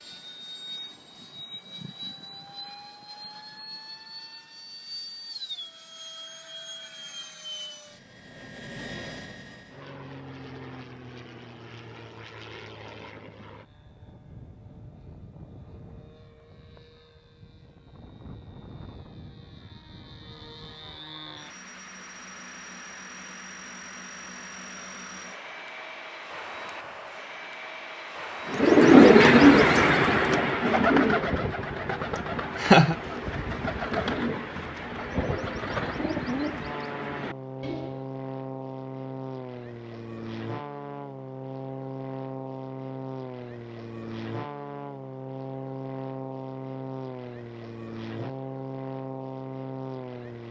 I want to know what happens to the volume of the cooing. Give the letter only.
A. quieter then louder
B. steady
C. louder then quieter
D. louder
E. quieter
E.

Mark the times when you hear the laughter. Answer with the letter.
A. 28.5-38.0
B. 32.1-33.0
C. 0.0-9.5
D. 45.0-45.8
B.